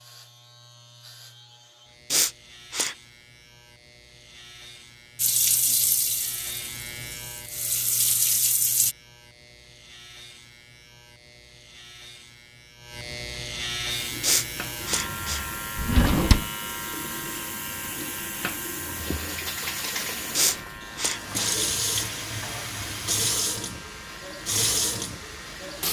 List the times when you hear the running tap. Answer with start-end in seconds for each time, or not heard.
5.2-8.9, 13.9-25.8.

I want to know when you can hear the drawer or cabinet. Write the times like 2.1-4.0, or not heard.
15.8-16.4.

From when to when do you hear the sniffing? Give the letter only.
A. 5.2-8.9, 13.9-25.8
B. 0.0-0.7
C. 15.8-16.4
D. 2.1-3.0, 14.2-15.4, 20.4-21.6
D.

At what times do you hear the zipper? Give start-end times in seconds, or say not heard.
not heard.